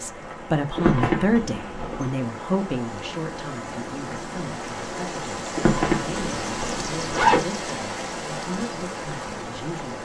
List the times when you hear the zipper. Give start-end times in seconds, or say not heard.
0.8-2.1, 5.5-7.4.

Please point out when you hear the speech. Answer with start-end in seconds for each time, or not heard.
0.0-9.9.